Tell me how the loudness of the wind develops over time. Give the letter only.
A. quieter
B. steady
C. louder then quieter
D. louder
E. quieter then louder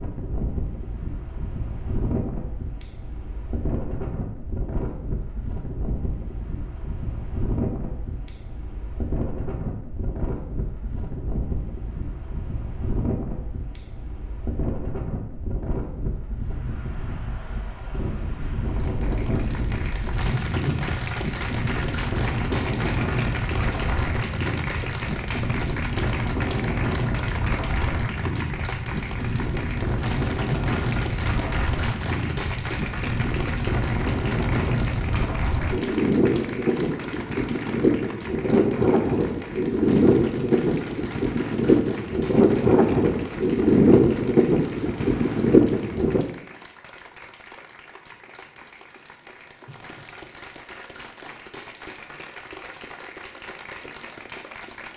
D.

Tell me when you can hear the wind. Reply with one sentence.
The wind can be heard from 0.0 to 46.2 s.